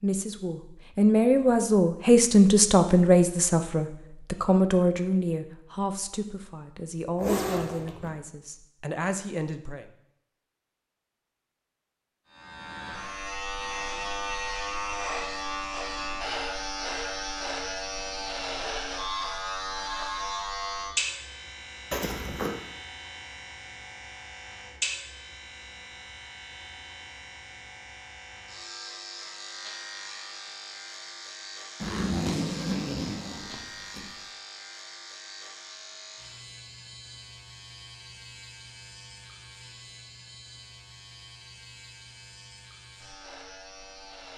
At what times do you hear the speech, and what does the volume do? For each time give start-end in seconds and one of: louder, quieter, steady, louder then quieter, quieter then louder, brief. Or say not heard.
0.0-9.8 quieter.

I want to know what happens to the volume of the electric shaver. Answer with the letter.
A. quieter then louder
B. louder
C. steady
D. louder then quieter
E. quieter
E.